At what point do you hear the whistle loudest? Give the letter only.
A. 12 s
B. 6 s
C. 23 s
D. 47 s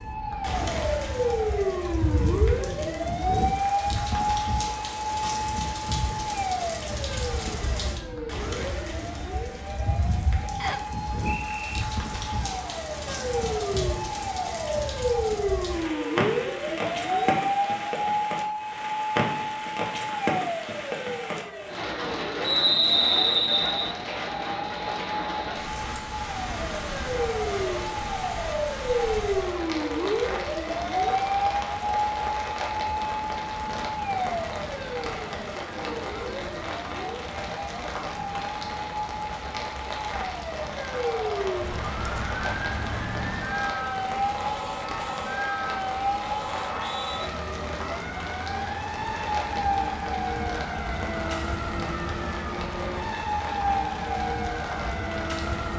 C.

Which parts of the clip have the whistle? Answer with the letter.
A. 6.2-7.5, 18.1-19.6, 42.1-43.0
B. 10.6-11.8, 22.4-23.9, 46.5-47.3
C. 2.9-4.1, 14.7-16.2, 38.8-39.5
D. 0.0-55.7
B.